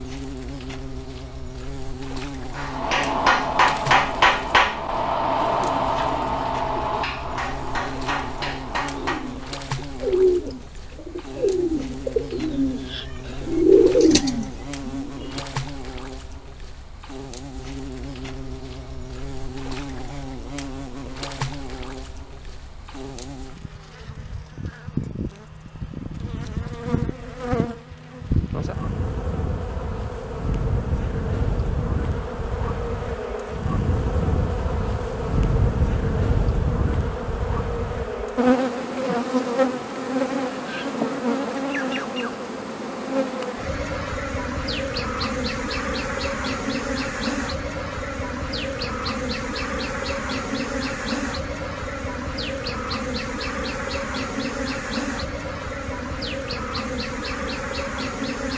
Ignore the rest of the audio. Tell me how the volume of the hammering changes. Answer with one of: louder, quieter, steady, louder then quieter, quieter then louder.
quieter.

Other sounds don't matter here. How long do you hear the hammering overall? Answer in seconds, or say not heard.
7 s.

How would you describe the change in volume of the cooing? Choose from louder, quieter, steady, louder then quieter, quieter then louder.
quieter then louder.